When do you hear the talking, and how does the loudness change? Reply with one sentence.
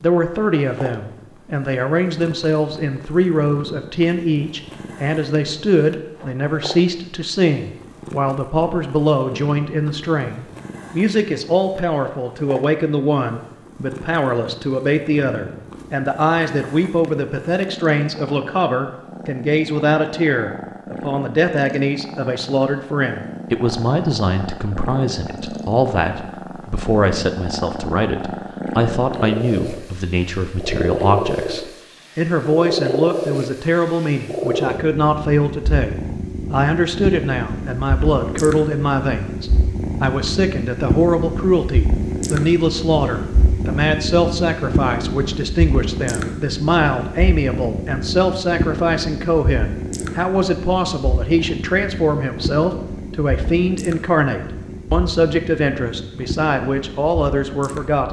The talking can be heard from 0.0 to 58.0 s, at a steady volume.